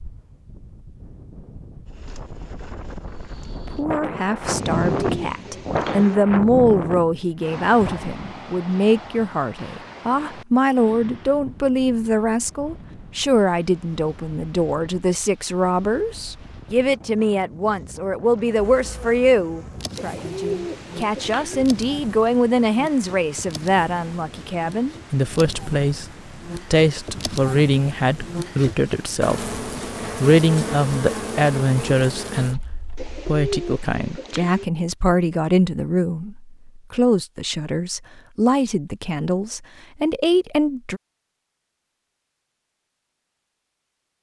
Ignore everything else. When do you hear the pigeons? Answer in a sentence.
You can hear the pigeons from 4.5 to 6.2 s, from 19.9 to 21.6 s and from 33.0 to 34.6 s.